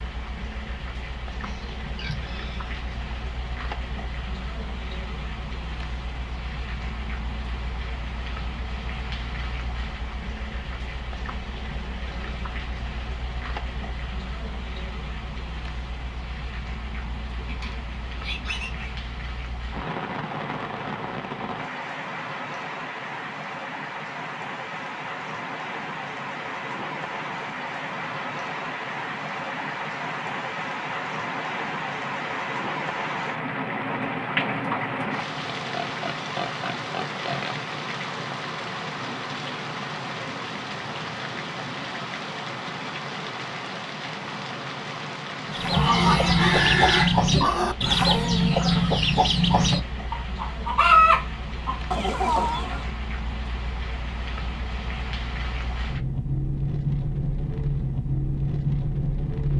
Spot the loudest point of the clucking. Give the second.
51 s.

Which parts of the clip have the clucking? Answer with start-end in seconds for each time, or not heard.
45.5-52.9.